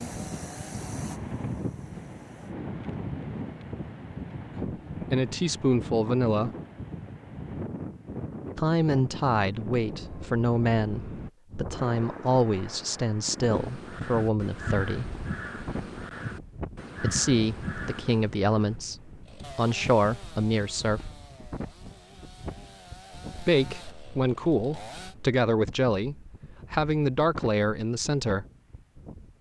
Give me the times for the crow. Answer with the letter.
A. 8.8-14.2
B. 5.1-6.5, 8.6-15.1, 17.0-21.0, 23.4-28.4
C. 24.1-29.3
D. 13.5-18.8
D.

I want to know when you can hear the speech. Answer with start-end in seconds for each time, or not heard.
5.1-6.5, 8.6-15.1, 17.0-21.0, 23.4-28.4.